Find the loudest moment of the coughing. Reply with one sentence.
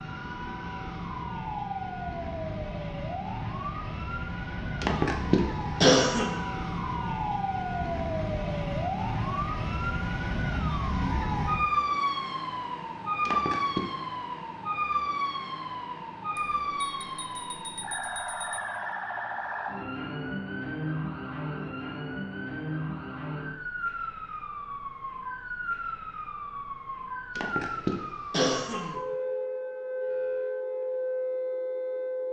The volume of the coughing peaks at 6 seconds.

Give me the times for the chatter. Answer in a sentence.
The chatter can't be heard in this clip.